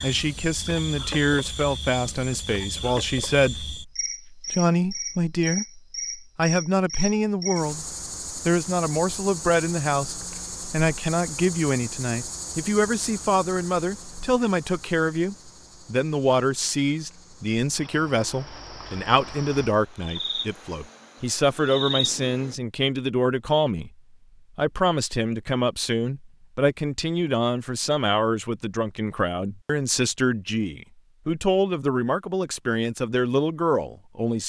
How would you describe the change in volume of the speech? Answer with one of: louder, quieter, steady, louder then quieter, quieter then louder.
steady.